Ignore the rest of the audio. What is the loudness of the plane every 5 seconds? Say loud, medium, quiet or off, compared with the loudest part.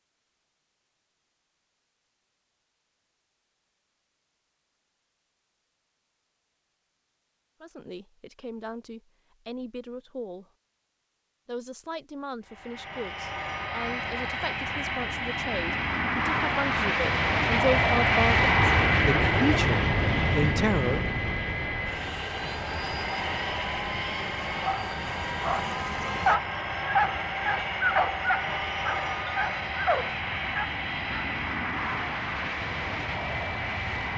off, off, medium, loud, medium, medium, medium.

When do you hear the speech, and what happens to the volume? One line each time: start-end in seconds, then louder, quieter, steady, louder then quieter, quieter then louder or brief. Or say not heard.
7.6-10.4 brief
11.4-21.1 louder.